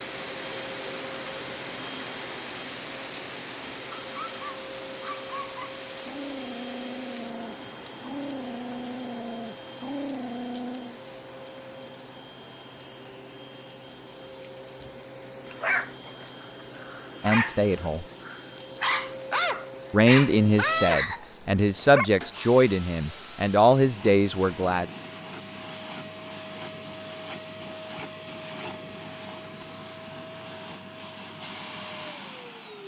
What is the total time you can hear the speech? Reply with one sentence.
The speech can be heard for 6 seconds in total.